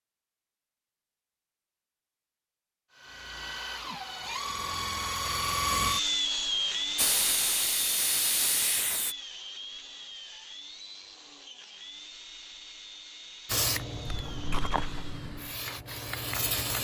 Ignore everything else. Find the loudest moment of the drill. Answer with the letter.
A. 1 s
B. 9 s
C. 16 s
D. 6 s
D.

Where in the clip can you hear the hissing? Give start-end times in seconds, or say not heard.
7.0-9.2, 13.4-16.7.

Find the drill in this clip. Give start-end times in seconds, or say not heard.
2.9-15.3.